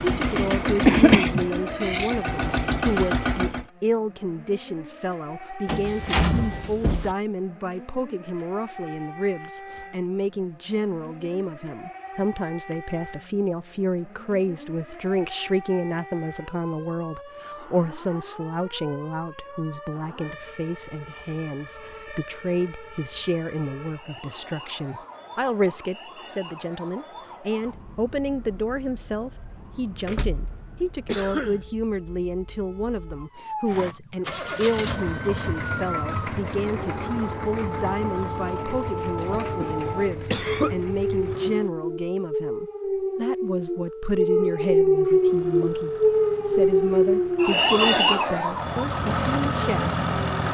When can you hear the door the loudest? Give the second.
6 s.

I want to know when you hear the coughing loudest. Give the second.
1 s.